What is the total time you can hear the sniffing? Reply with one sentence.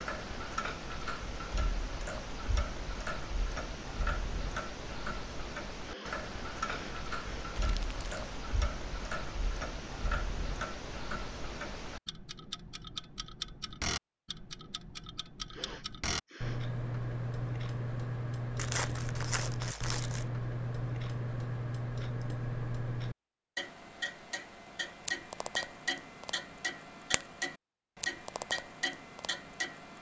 The sniffing can be heard for 3 seconds in total.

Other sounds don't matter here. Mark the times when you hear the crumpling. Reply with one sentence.
You can hear the crumpling from 7.5 to 8.3 s and from 18.6 to 20.3 s.